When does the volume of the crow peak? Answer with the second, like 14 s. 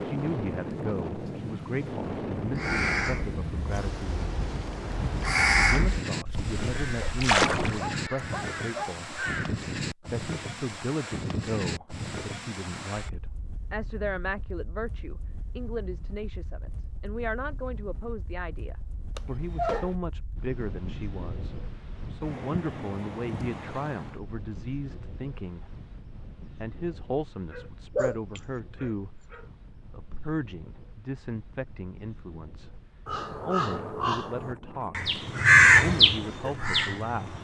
36 s.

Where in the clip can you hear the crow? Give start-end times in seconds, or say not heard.
2.4-9.6, 33.0-37.3.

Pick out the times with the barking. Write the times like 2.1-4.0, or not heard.
7.0-8.9, 19.1-19.9, 27.5-29.4.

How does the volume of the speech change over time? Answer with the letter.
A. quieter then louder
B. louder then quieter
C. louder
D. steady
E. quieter
D.